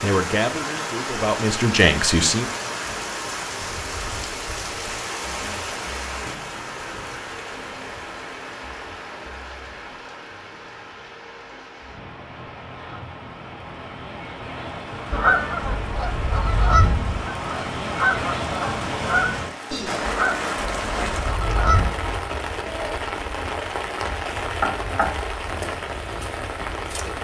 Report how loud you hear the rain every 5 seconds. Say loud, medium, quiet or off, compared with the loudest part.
loud, medium, medium, loud, loud, loud.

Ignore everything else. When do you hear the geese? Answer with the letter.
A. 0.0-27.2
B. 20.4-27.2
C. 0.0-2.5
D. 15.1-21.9
D.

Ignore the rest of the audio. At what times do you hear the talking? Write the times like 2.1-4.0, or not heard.
0.0-2.5.